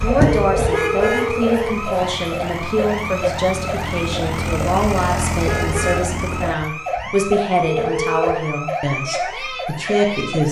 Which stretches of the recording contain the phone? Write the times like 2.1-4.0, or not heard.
0.2-1.9, 7.7-8.3.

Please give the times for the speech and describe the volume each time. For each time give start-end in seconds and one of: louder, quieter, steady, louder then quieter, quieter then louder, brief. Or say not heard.
0.0-10.4 steady.